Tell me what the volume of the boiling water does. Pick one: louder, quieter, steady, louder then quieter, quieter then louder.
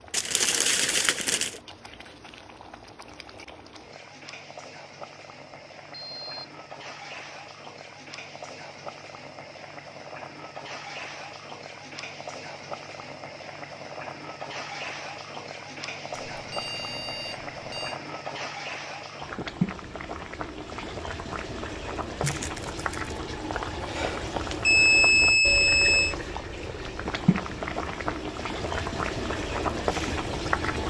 louder.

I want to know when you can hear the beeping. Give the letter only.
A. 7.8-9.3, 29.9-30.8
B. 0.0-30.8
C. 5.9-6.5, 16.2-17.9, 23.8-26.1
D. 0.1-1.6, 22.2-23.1
C.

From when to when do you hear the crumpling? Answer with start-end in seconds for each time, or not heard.
0.1-1.6, 22.2-23.1.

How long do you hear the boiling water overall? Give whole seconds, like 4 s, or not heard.
31 s.